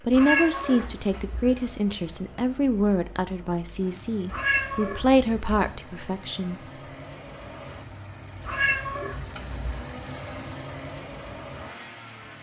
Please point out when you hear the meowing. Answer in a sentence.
The meowing can be heard from 0.1 to 1.6 s, from 4.2 to 5.8 s and from 8.4 to 9.9 s.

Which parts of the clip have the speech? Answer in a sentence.
You can hear the speech from 0.0 to 6.6 s.